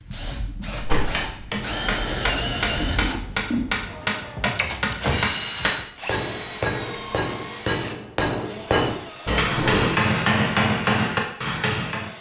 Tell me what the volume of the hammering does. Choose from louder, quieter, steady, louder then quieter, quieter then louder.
louder.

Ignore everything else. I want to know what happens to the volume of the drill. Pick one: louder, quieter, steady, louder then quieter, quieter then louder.
quieter.